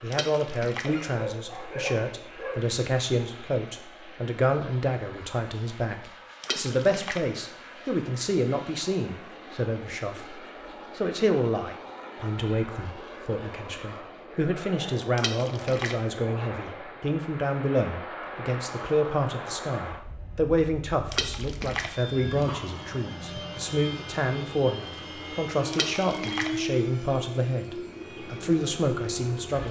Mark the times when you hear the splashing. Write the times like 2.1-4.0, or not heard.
0.1-0.9, 6.4-7.2, 15.2-15.9, 21.1-21.9, 25.7-26.5.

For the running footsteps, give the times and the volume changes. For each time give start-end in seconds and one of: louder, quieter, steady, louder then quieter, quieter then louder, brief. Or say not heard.
not heard.